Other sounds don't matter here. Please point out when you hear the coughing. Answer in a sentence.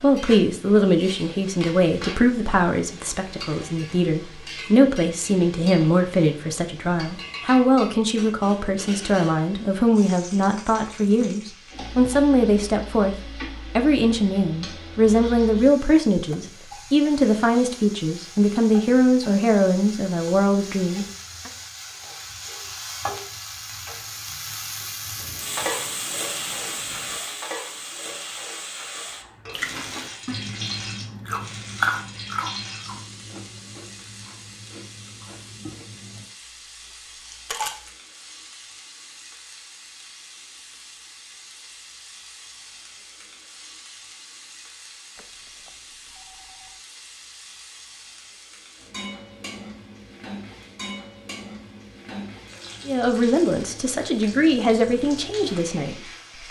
You can't hear the coughing here.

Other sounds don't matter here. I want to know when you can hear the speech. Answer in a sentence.
The speech can be heard from 0.0 to 21.5 s and from 52.9 to 56.4 s.